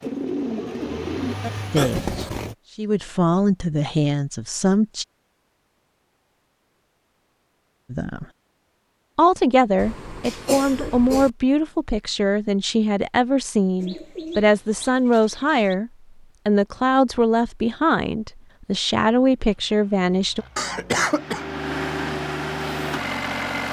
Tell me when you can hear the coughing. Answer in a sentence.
You can hear the coughing from 1.8 to 2.5 s, from 9.8 to 11.3 s and from 20.6 to 21.4 s.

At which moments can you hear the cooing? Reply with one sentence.
The cooing can be heard from 0.0 to 1.5 s and from 13.8 to 15.8 s.